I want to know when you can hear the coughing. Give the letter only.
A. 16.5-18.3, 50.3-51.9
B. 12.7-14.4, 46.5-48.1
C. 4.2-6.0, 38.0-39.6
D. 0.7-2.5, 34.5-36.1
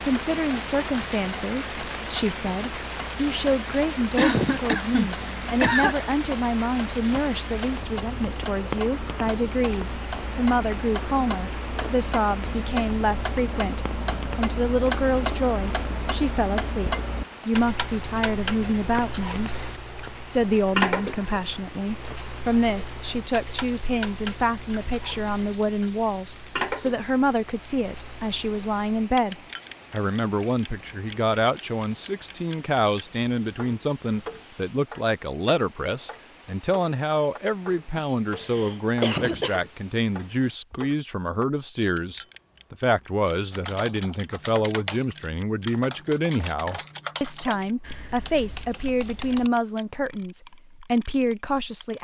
C.